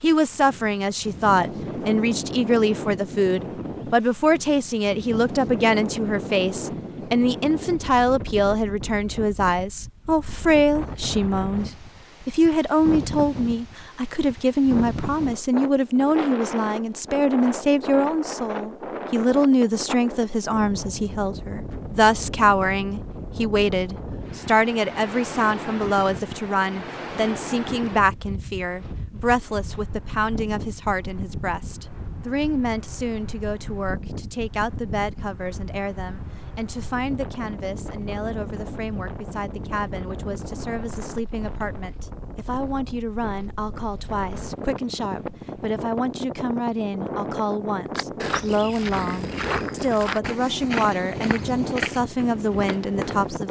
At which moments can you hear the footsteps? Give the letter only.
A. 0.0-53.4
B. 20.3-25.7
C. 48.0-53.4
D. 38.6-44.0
C.